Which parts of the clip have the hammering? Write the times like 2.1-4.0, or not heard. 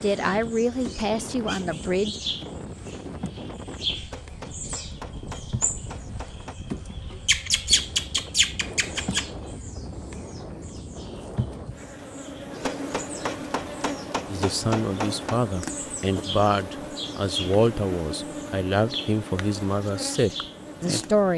4.1-6.6, 12.6-15.4.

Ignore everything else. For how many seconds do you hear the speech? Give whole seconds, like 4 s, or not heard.
9 s.